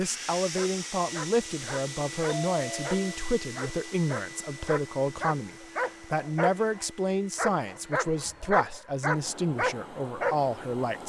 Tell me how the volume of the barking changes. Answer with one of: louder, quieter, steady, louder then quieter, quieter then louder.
louder.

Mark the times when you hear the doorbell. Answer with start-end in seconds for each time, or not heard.
2.2-3.1.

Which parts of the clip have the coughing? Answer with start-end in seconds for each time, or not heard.
not heard.